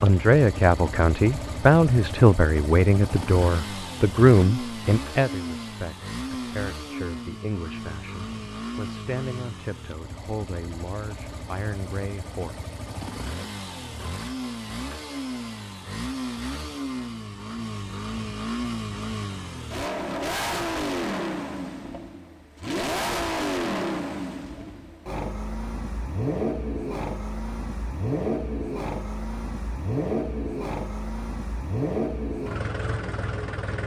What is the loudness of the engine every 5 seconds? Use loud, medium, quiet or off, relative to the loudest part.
medium, medium, medium, loud, loud, loud, loud.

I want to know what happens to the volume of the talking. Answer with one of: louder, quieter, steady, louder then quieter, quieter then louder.
quieter.